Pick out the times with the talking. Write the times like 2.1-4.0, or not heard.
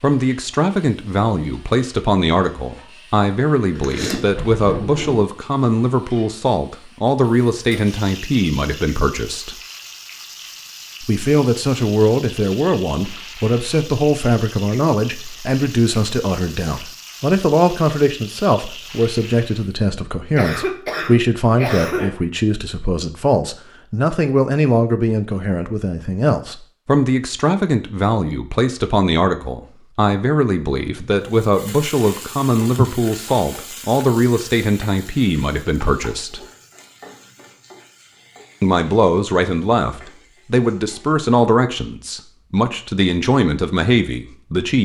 0.0-9.6, 11.0-36.5, 38.6-44.8.